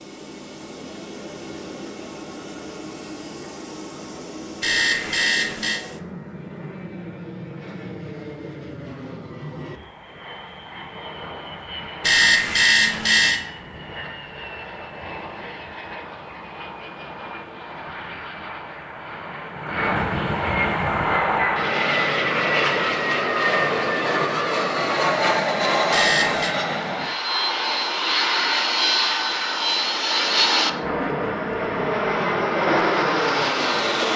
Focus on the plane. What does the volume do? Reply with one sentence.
The loudness of the plane goes up.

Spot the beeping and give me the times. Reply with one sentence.
You can hear the beeping from 4.6 to 5.8 s, from 12.0 to 13.4 s and from 25.9 to 26.6 s.